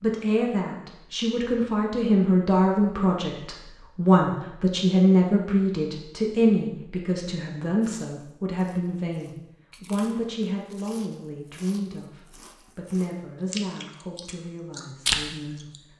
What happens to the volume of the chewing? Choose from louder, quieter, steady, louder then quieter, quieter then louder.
louder.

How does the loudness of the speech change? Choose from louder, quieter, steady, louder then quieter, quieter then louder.
quieter.